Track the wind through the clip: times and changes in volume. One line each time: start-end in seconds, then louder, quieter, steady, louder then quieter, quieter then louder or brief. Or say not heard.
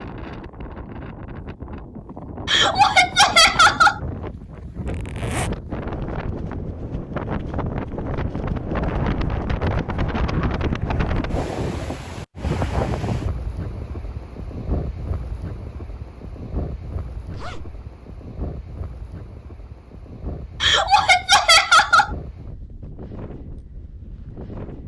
0.0-24.8 louder then quieter.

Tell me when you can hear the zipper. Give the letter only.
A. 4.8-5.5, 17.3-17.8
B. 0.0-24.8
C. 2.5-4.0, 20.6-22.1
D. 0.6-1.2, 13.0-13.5
A.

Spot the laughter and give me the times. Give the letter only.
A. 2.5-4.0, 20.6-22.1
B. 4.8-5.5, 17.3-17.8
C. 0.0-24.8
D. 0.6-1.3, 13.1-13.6
A.